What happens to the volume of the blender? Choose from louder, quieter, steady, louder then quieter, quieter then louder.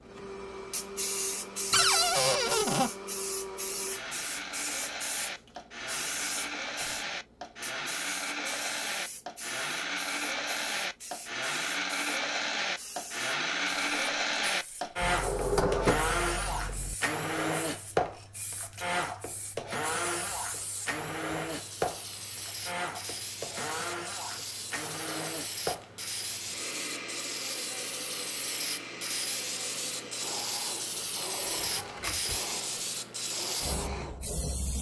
louder then quieter.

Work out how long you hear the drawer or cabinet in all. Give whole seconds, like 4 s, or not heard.
4 s.